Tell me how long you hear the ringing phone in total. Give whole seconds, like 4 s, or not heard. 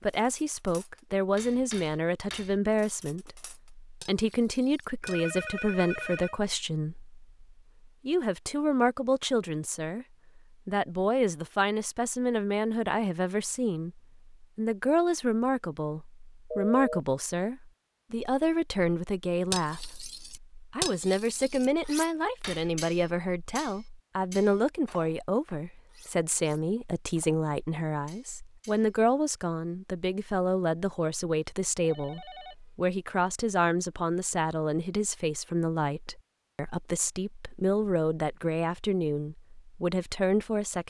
3 s.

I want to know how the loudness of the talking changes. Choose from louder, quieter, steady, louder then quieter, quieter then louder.
steady.